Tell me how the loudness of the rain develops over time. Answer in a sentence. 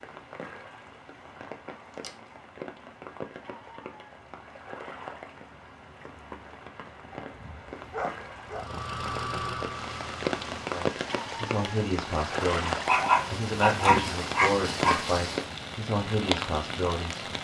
The volume of the rain goes up.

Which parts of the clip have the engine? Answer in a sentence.
You can hear the engine from 8.4 to 10.7 s.